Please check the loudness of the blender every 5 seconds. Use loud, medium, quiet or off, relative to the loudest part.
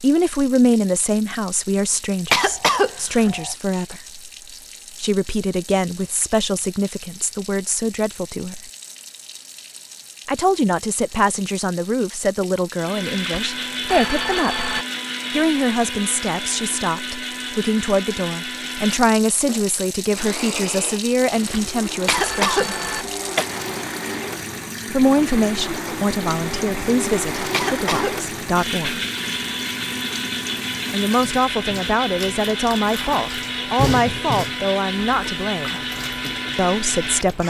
off, off, loud, loud, medium, loud, loud, loud.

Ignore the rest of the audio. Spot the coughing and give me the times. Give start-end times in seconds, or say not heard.
2.3-3.5, 22.1-23.4, 27.5-28.2.